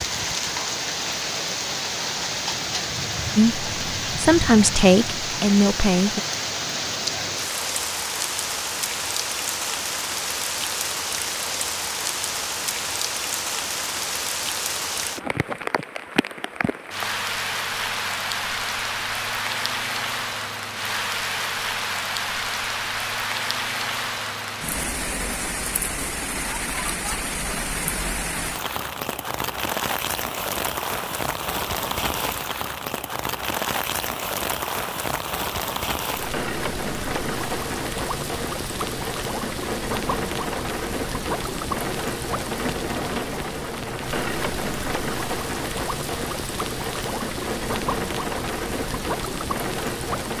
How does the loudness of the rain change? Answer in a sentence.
The volume of the rain stays about the same.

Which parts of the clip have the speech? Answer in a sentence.
You can hear the speech from 3.4 to 6.2 s.